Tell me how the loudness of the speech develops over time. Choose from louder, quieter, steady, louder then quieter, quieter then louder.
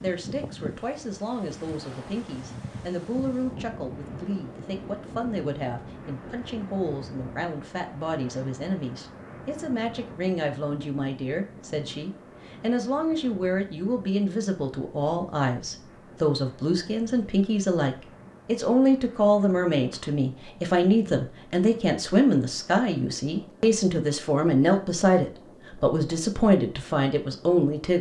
louder.